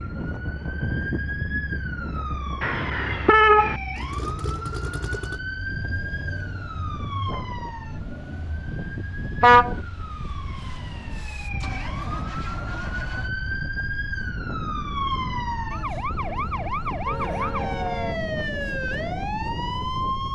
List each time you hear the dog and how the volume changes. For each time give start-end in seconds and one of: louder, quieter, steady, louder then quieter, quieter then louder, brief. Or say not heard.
not heard.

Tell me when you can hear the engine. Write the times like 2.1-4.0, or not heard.
3.9-13.3.